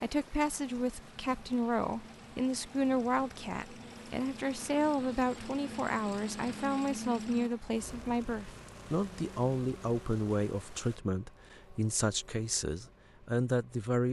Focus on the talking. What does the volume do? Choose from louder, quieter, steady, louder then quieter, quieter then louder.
steady.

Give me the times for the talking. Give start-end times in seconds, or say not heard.
0.0-14.0.